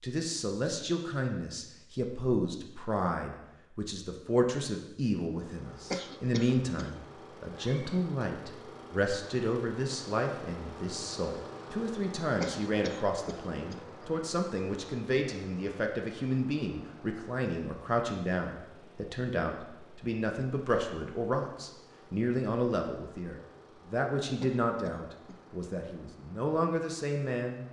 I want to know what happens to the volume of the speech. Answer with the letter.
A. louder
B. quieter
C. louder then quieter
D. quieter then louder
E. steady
E.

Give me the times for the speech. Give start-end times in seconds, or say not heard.
0.0-27.6.